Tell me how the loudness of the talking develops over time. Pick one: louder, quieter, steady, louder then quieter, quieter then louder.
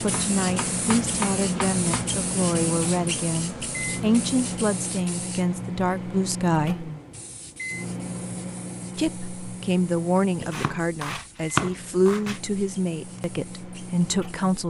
steady.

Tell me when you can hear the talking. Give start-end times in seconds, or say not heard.
0.0-6.9, 8.9-14.6.